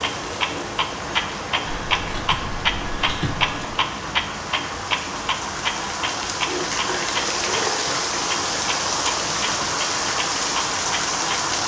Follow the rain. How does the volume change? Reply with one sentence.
The loudness of the rain goes up.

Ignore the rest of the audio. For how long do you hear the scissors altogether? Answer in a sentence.
The scissors can be heard for 3 seconds in total.